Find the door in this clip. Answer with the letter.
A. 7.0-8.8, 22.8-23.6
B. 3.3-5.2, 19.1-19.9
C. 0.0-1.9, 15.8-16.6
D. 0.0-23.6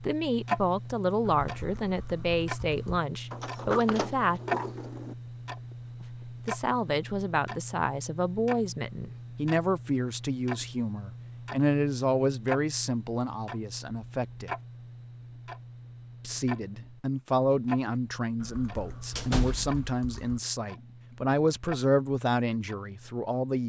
B.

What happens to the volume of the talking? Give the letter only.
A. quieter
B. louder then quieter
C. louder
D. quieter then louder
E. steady
E.